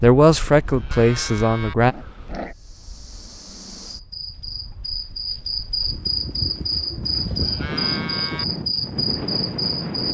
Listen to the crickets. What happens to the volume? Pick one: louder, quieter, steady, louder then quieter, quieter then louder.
louder.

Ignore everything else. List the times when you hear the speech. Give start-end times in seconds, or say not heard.
0.0-1.9.